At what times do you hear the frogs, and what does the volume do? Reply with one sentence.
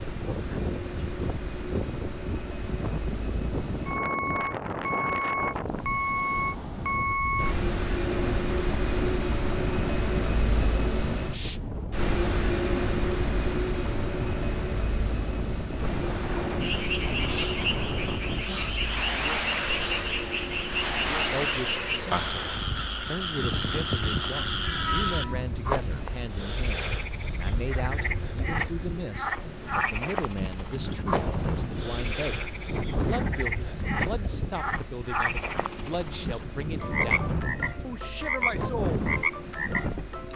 You can hear the frogs from 16.6 to 40.3 s, at a steady volume.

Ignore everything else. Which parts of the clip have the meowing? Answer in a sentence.
The meowing can be heard from 24.4 to 26.1 s.